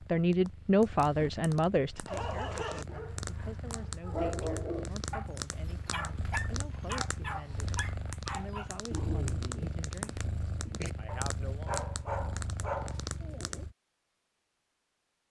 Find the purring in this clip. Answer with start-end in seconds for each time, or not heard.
0.0-13.8.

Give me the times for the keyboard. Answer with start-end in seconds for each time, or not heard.
not heard.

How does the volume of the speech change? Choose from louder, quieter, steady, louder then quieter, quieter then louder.
quieter.